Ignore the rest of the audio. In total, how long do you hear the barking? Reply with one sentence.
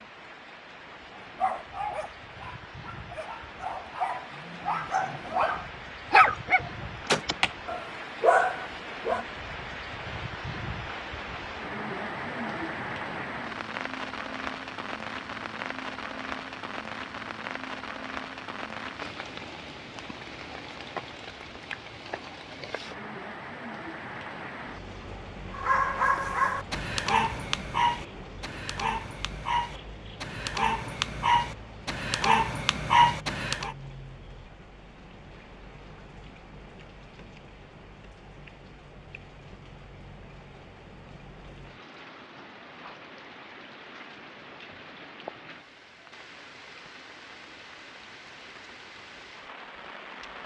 The barking can be heard for 16 seconds in total.